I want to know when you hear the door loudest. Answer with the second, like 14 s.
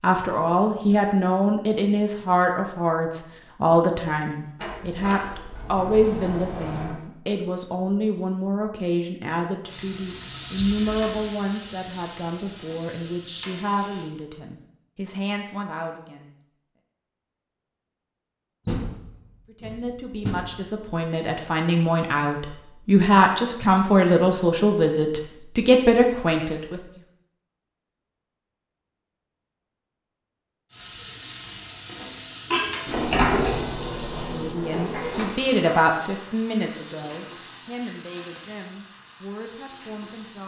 33 s.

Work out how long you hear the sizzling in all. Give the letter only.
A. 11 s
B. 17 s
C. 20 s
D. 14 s
D.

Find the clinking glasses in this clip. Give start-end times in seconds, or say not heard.
32.5-33.0.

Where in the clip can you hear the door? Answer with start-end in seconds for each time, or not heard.
4.5-7.0, 18.6-20.4, 32.9-35.3.